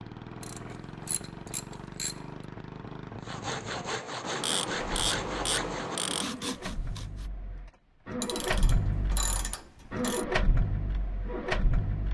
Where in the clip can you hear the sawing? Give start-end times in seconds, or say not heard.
3.2-7.3.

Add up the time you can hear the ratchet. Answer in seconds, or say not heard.
6 s.